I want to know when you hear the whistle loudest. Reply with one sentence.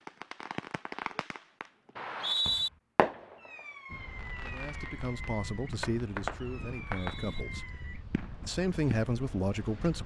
The volume of the whistle peaks at 2 seconds.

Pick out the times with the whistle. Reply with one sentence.
You can hear the whistle from 1.9 to 2.7 s and from 6.8 to 7.5 s.